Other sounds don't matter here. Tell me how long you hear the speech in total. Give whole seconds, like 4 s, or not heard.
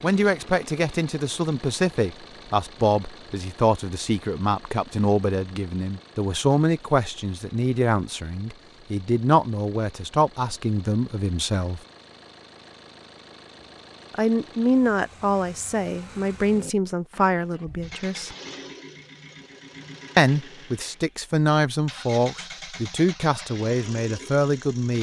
21 s.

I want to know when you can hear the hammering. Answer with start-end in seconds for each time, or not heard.
not heard.